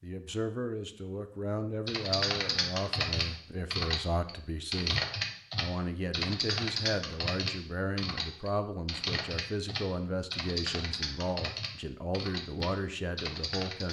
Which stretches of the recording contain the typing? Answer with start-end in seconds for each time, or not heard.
1.9-13.8.